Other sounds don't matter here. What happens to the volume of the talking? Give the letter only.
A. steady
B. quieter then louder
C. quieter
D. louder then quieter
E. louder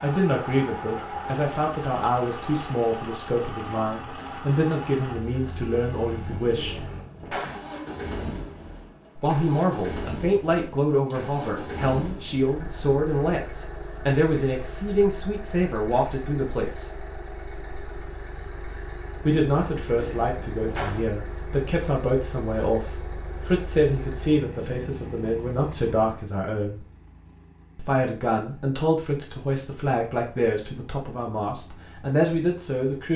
A.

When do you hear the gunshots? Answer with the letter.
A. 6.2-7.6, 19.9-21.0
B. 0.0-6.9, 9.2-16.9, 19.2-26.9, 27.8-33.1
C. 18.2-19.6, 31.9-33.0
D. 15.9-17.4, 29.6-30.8
A.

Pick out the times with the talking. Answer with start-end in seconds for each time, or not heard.
0.0-6.9, 9.2-16.9, 19.2-26.9, 27.8-33.1.